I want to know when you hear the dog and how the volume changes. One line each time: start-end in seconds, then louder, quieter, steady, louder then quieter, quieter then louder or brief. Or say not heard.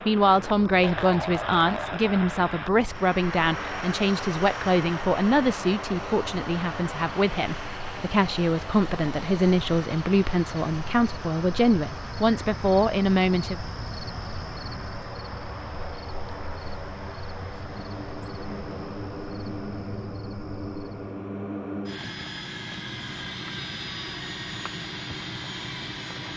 not heard.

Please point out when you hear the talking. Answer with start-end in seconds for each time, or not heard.
0.1-13.6.